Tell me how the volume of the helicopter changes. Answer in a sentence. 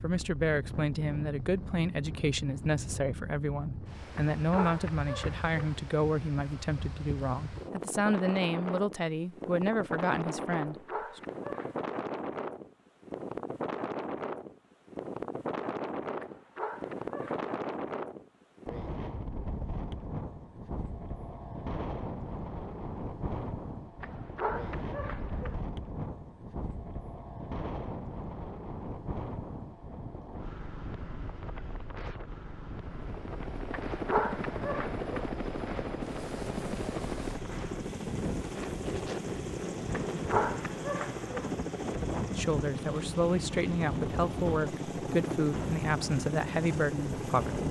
The loudness of the helicopter stays about the same.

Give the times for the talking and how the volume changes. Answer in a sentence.
The talking can be heard from 0.0 to 11.2 s, at a steady volume; and from 42.4 to 47.6 s, at a steady volume.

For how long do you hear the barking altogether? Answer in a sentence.
You can hear the barking for 9 seconds altogether.